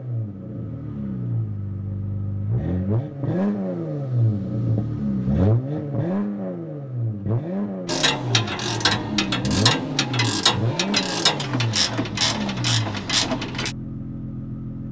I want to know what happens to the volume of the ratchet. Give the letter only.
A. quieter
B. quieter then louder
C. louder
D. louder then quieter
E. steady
E.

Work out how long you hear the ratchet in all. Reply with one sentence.
The ratchet can be heard for 6 seconds in total.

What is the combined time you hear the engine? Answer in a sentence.
The engine can be heard for 15 seconds in total.